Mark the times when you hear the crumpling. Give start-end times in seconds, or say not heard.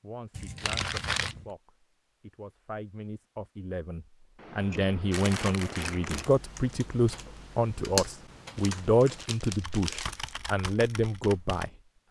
0.6-1.4, 5.1-6.2, 8.6-10.3.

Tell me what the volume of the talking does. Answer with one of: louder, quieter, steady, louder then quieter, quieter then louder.
louder.